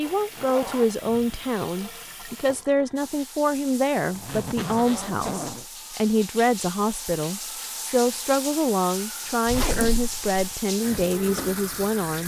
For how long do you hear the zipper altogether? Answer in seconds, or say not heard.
4 s.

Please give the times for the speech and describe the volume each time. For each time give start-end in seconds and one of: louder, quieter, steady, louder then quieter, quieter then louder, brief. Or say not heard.
0.0-12.2 steady.